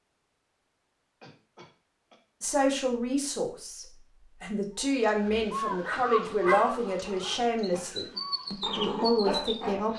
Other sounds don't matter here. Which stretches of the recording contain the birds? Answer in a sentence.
You can hear the birds from 4.8 to 9.9 s.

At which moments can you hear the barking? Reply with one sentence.
You can hear the barking from 5.2 to 9.8 s.